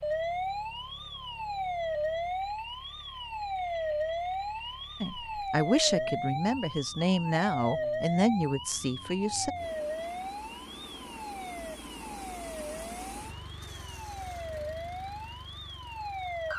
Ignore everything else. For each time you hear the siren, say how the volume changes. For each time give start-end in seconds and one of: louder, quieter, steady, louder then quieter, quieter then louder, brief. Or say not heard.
0.0-16.5 quieter.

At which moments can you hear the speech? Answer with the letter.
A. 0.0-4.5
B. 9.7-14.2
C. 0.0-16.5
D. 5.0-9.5
D.